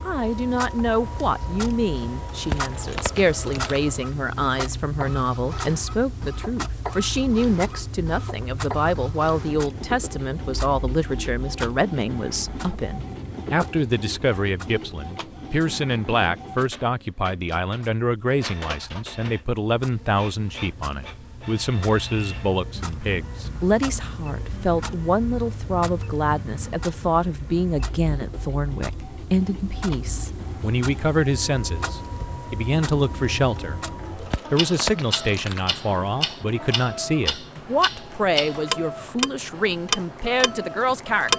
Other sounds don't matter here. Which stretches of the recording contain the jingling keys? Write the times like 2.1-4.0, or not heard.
2.4-3.8, 34.1-35.8.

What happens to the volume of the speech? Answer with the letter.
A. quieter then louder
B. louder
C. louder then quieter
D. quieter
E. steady
E.